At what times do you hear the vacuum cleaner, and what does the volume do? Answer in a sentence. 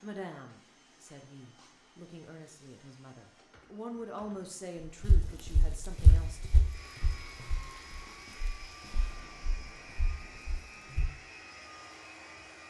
You can hear the vacuum cleaner from 0.0 to 12.6 s, getting louder.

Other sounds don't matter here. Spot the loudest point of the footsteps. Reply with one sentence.
The loudest moment of the footsteps is at 6 seconds.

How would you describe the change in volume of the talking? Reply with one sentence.
The loudness of the talking goes up, then down.